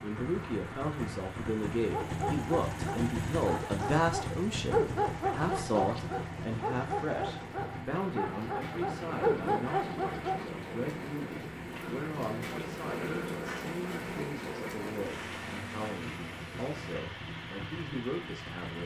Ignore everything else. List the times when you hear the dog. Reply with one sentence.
The dog can be heard from 1.9 to 10.5 s.